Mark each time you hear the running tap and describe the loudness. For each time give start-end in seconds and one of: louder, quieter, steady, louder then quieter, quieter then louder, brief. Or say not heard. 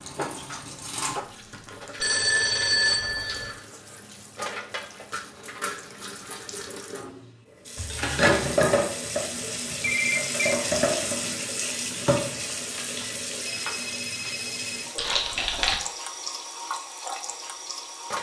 0.0-18.1 louder then quieter.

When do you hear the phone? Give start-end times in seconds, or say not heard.
2.0-3.5, 9.8-10.6, 12.8-14.8.